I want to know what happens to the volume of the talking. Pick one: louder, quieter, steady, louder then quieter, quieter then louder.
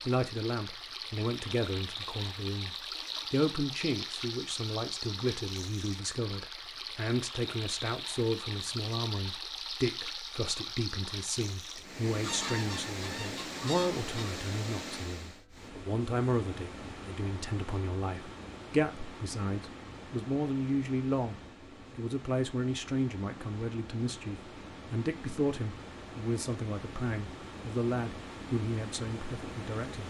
steady.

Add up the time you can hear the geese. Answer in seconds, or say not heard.
2 s.